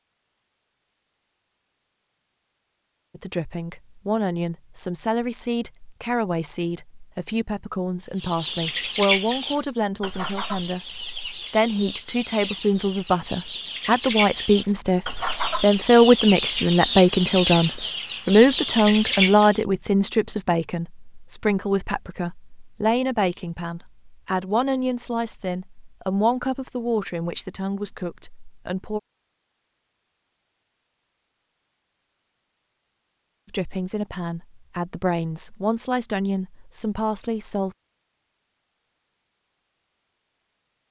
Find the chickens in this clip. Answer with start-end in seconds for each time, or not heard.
8.2-19.6.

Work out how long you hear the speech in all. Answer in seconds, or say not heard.
30 s.